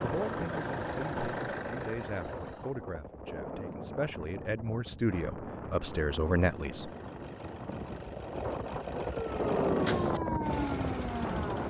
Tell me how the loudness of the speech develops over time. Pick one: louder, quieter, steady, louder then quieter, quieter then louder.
louder.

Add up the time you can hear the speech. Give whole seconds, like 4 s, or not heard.
7 s.